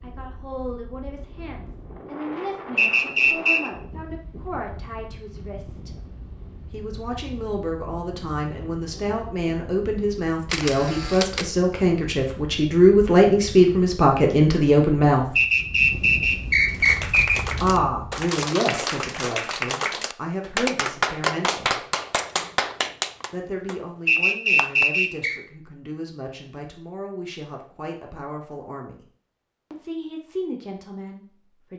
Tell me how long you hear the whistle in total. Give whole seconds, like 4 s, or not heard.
4 s.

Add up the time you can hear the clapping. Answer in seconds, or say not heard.
8 s.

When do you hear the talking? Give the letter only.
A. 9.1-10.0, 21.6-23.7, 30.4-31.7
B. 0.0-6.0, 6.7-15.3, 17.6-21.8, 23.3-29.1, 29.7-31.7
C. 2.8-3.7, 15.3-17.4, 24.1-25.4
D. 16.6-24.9
B.